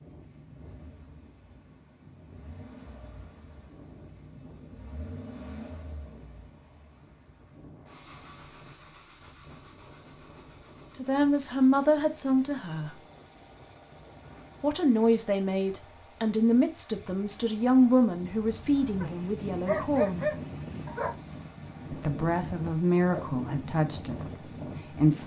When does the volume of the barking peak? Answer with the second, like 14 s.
20 s.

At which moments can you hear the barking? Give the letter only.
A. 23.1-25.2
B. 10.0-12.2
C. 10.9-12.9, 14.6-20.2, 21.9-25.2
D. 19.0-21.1
D.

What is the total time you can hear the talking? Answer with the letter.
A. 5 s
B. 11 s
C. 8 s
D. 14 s
B.